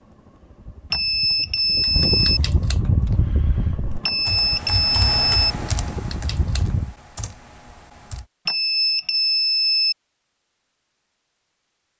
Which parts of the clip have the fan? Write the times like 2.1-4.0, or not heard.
0.0-7.0.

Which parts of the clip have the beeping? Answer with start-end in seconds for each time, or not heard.
0.9-2.4, 4.0-5.5, 8.4-9.9.